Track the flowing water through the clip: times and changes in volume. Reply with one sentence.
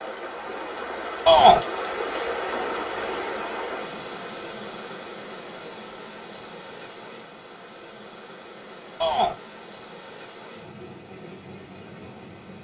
You can hear the flowing water from 0.0 to 12.6 s, getting quieter.